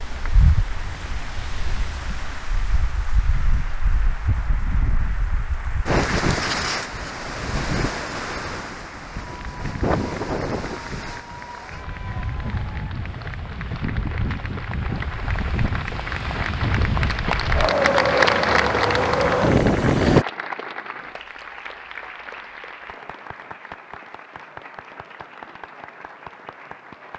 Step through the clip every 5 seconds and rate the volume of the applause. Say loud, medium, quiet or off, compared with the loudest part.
quiet, quiet, quiet, loud, medium, quiet.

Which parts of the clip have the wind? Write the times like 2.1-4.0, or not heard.
0.0-20.2.